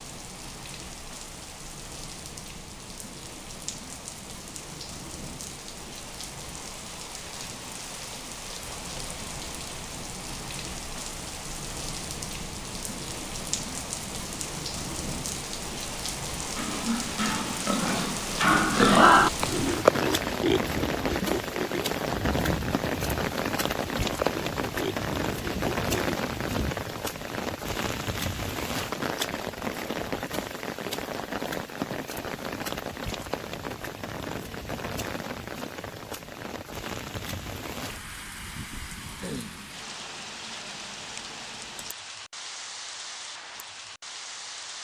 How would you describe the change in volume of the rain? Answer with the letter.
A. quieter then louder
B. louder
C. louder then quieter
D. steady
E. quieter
C.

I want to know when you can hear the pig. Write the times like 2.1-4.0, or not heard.
16.6-26.8.